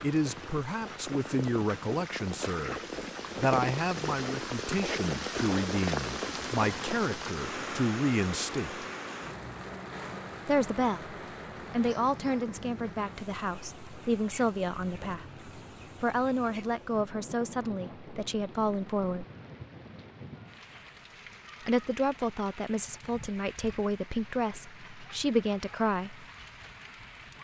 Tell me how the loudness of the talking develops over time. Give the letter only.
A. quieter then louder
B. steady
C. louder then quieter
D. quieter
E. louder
B.